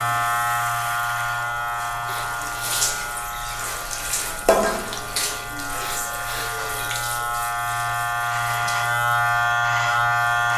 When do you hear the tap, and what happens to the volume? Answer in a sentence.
The tap can be heard from 0.0 to 10.5 s, getting louder then quieter.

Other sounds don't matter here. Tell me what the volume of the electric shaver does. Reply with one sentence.
The loudness of the electric shaver goes down, then up.